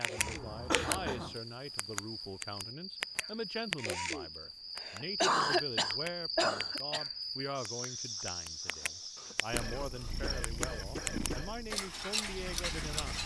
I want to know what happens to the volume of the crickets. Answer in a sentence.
The volume of the crickets goes up, then down.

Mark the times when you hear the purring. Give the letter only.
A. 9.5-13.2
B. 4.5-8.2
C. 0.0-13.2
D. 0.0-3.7
A.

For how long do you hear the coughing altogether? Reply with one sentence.
The coughing can be heard for 6 seconds in total.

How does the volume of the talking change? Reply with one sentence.
The loudness of the talking stays about the same.